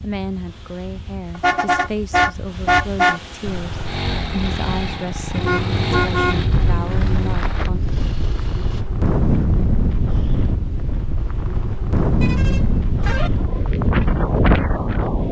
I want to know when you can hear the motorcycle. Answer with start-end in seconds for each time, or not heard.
3.4-8.8.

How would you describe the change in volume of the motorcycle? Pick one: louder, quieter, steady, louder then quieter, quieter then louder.
quieter.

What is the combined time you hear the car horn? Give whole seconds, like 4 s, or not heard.
5 s.